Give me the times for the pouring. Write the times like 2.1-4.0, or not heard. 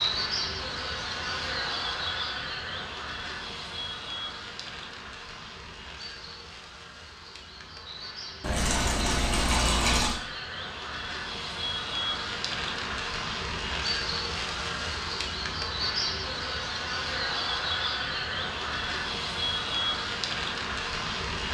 8.4-10.2.